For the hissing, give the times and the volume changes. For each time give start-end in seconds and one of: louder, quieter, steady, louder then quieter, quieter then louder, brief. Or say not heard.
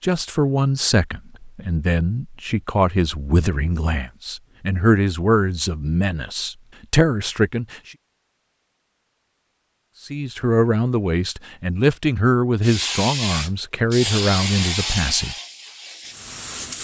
12.6-16.7 quieter.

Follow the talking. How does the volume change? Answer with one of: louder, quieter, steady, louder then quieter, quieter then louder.
steady.